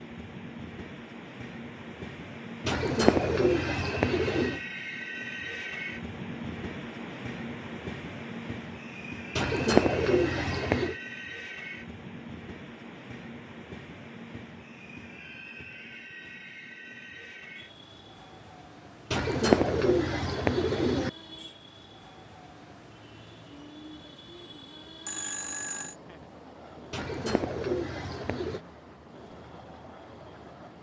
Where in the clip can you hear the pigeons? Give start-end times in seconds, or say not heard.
2.6-4.6, 9.3-10.9, 19.1-21.1, 26.9-28.6.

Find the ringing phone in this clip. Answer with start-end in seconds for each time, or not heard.
25.1-25.9.